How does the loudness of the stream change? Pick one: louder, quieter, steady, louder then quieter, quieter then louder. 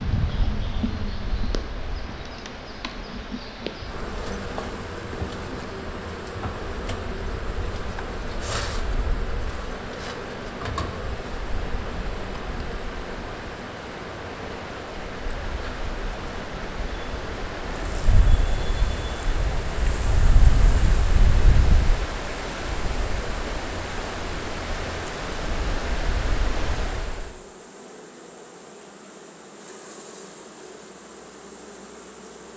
louder.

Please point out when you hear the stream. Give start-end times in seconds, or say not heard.
0.0-27.3.